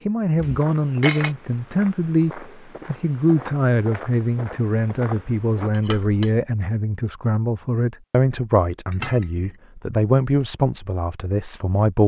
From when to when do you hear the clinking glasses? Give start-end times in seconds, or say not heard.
0.3-1.3, 5.7-6.3, 8.9-9.6.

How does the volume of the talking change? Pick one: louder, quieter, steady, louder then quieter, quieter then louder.
steady.